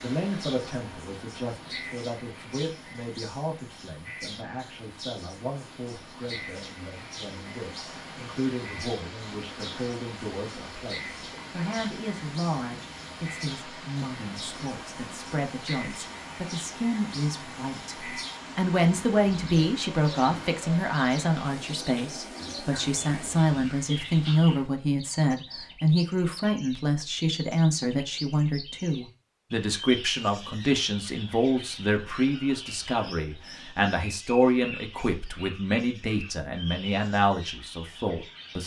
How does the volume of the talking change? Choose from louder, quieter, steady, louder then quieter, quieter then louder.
louder.